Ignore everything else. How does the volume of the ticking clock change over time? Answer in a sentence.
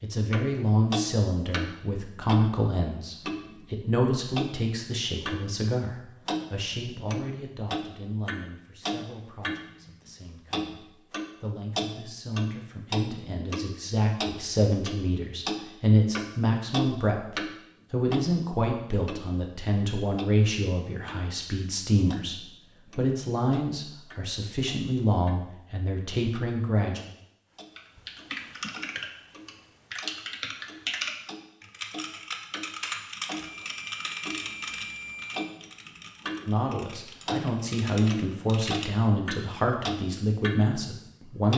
The loudness of the ticking clock goes down, then up.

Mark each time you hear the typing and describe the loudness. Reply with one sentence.
You can hear the typing from 27.8 to 38.9 s, getting quieter.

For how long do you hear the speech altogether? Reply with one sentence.
The speech can be heard for 32 seconds in total.